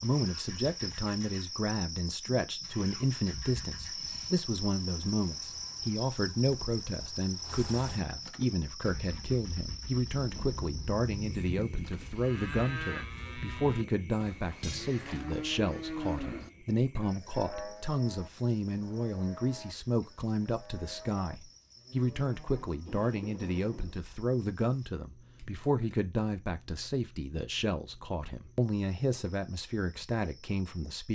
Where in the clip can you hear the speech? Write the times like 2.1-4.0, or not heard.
0.0-31.0.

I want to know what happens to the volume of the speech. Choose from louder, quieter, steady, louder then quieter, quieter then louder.
steady.